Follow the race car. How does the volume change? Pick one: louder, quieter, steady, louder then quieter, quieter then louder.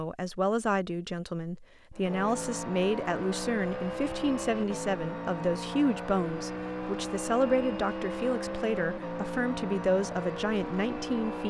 steady.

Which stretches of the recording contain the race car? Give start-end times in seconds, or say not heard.
1.9-11.4.